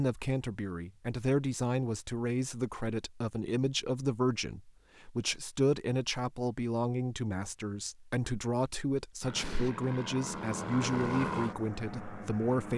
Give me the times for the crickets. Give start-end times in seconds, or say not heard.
not heard.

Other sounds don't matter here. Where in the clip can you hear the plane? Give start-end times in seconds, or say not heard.
9.2-12.7.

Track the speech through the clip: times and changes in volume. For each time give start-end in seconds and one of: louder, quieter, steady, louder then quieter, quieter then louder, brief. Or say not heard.
0.0-12.7 steady.